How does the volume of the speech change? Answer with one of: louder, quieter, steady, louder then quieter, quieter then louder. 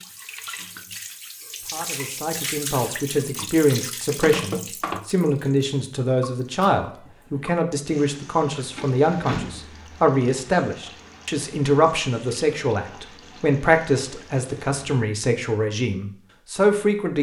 steady.